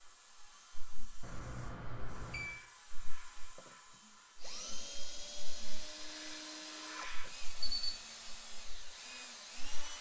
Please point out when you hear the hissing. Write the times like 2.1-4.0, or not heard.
0.0-9.9.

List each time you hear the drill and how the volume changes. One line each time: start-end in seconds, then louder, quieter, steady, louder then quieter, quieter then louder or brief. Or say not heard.
3.3-9.9 steady.